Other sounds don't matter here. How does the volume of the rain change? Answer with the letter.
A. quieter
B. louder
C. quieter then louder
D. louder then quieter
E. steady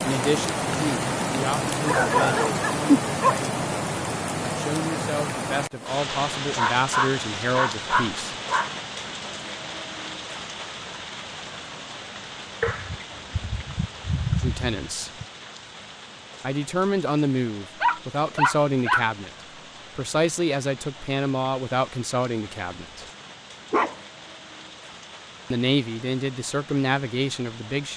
A.